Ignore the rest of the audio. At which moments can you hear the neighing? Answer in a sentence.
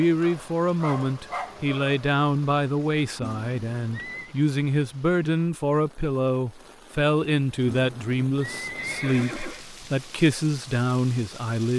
The neighing can be heard from 3.2 to 4.3 s and from 7.7 to 9.7 s.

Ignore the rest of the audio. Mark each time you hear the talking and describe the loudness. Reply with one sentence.
The talking can be heard from 0.0 to 11.7 s, at a steady volume.